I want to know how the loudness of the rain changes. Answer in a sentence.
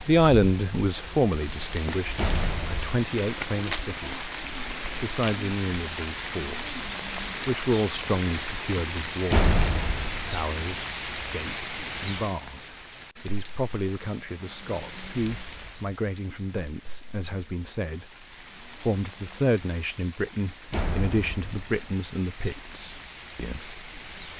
The loudness of the rain goes down.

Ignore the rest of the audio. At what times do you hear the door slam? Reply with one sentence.
The door slam can be heard from 2.1 to 3.0 s, from 9.3 to 10.4 s and from 20.7 to 21.9 s.